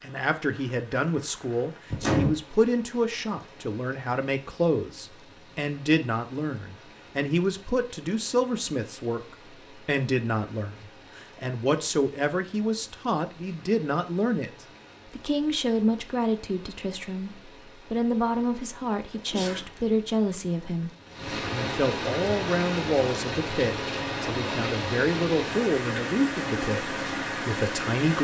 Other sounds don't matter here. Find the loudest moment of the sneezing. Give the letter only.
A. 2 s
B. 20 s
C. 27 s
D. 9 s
A.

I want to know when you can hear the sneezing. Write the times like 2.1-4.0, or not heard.
1.9-2.5, 19.1-19.8.